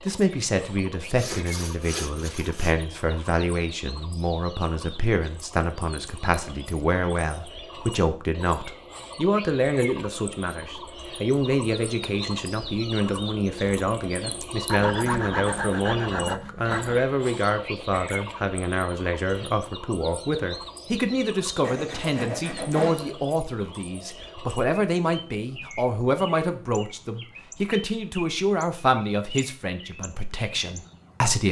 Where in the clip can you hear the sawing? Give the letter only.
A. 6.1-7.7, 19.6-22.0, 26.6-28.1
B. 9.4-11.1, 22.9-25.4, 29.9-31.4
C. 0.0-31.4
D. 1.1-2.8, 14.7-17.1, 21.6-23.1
D.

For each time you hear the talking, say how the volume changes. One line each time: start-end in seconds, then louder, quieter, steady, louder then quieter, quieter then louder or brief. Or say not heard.
0.0-31.4 steady.